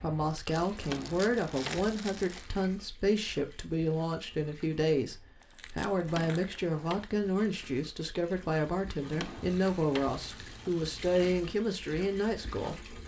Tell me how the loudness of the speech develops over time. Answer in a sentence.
The loudness of the speech stays about the same.